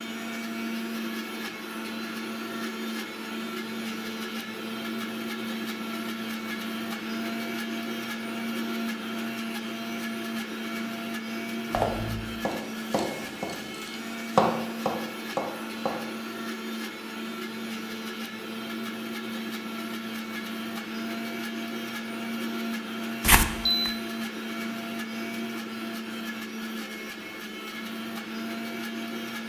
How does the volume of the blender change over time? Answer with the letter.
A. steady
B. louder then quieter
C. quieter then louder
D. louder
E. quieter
A.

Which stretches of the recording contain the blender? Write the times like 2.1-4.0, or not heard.
0.0-29.4.